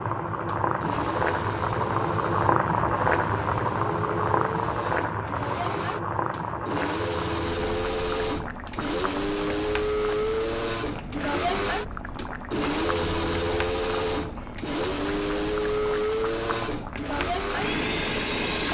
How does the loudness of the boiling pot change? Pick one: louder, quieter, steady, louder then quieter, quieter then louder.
quieter.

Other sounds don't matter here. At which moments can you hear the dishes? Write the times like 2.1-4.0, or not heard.
not heard.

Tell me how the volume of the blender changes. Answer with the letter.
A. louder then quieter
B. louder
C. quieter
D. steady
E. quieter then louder
B.